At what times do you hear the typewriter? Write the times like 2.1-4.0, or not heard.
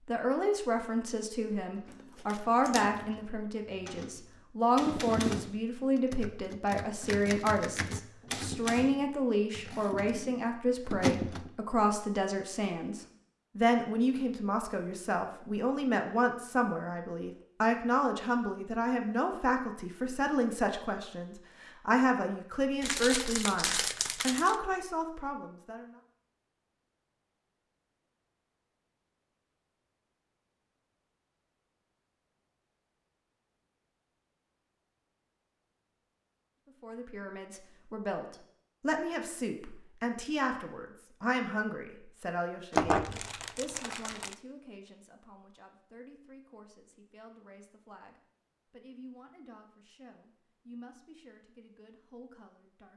1.7-11.5.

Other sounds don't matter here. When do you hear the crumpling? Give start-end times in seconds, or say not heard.
1.9-2.9, 22.8-24.6, 42.7-44.4.